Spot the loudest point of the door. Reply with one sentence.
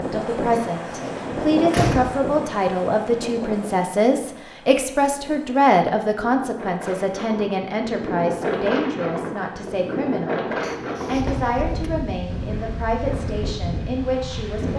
The loudest moment of the door is at 2 seconds.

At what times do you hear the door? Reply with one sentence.
The door can be heard from 0.5 to 2.2 s and from 10.6 to 11.9 s.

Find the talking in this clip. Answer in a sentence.
You can hear the talking from 0.0 to 14.7 s.